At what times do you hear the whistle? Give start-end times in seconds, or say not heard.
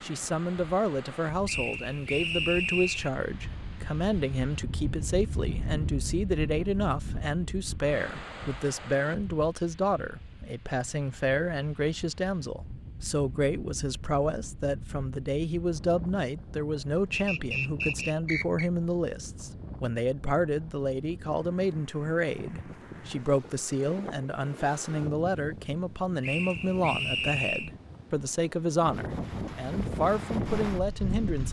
1.4-3.1, 17.1-18.7, 26.2-27.7.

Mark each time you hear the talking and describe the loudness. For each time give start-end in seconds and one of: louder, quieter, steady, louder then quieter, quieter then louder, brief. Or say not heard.
0.0-31.4 steady.